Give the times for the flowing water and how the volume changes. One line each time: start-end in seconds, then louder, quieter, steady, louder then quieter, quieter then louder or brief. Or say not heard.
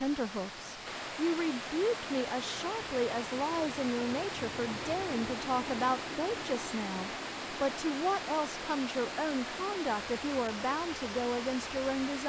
0.0-12.2 steady.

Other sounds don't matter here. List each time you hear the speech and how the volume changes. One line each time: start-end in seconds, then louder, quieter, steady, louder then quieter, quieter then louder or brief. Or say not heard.
0.0-12.2 steady.